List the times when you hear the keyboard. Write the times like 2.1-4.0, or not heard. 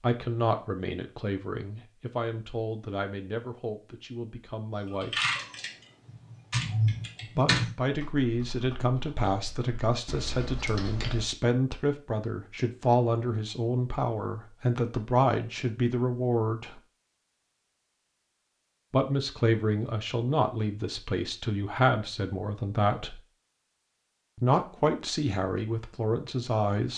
4.9-11.2.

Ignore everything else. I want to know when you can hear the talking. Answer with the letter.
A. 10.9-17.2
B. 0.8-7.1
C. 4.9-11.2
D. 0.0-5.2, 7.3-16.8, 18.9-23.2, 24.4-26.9
D.